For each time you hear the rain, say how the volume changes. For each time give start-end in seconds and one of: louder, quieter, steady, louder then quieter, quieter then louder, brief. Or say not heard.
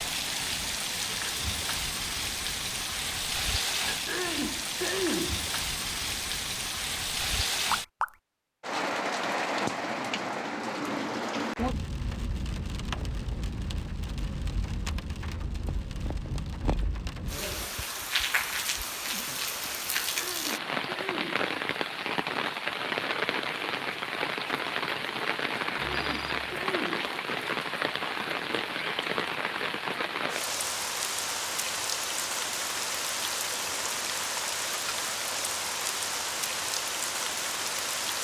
0.0-38.1 steady.